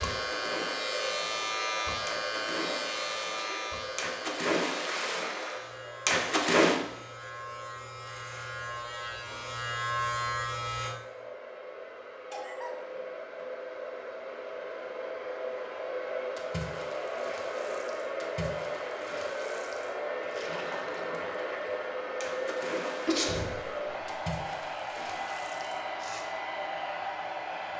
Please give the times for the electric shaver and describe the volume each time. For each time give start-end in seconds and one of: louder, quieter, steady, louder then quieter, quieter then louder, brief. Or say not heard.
0.0-10.9 quieter then louder.